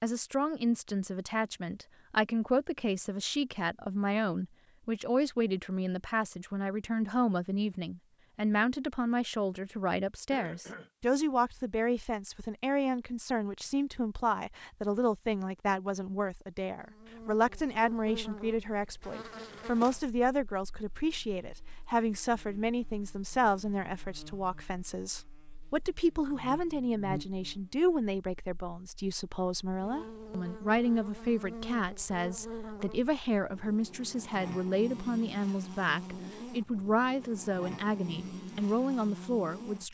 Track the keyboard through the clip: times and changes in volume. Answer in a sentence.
The keyboard can't be heard in this clip.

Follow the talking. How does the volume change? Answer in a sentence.
The volume of the talking stays about the same.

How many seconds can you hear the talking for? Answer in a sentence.
The talking can be heard for 40 seconds in total.